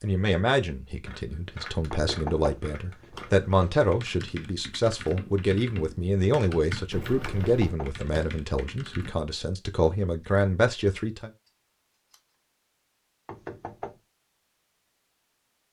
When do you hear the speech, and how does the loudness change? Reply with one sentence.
The speech can be heard from 0.0 to 11.3 s, at a steady volume.